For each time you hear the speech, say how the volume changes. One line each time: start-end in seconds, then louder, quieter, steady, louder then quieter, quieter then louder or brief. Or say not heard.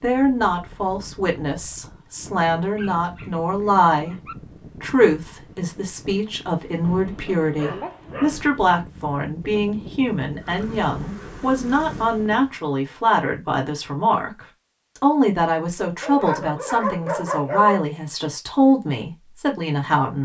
0.0-20.2 steady.